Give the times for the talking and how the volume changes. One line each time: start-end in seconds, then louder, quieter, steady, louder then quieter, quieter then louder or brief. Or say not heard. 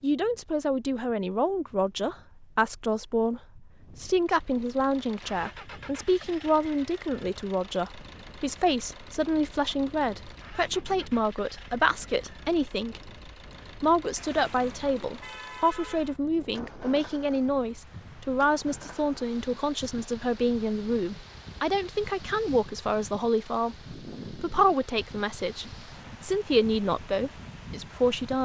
0.0-13.1 steady
13.8-28.4 steady.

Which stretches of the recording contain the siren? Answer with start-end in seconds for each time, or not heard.
not heard.